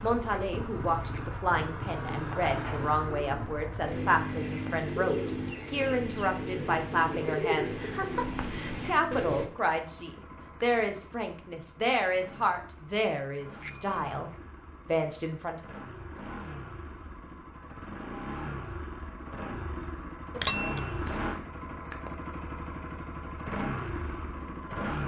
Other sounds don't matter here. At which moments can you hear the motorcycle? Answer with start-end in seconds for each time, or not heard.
0.0-25.0.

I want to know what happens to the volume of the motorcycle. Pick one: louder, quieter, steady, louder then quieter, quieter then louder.
quieter then louder.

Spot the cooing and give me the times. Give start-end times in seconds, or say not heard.
2.4-9.5.